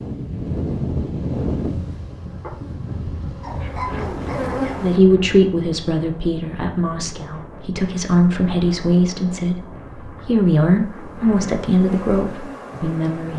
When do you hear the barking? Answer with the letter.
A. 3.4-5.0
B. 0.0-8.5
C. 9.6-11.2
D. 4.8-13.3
A.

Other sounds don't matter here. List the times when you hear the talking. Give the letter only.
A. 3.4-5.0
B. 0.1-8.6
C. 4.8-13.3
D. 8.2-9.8
C.